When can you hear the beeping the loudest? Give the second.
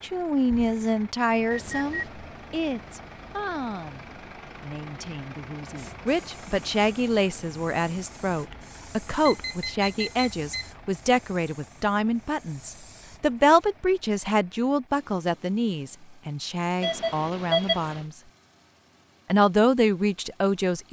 18 s.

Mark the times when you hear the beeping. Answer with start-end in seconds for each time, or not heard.
1.5-2.1, 9.2-10.8, 16.8-18.1.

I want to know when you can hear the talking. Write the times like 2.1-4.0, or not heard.
0.0-18.2, 19.2-20.8.